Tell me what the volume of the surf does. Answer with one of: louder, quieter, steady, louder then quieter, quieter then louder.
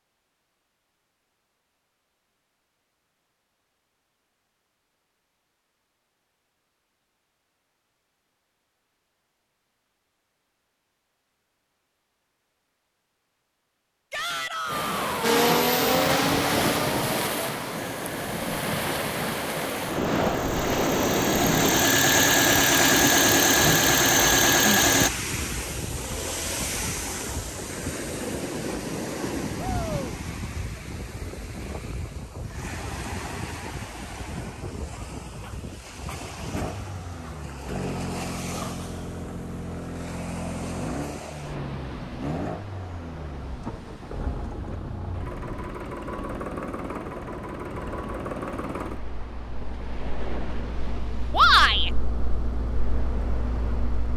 quieter.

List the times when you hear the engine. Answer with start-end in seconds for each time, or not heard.
15.2-25.1, 36.5-54.1.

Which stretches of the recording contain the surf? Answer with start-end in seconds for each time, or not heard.
14.7-54.1.